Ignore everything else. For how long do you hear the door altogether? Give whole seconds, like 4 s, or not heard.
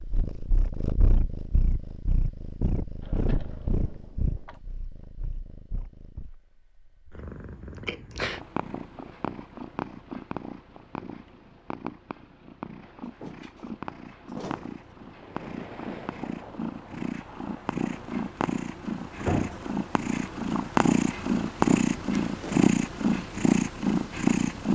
4 s.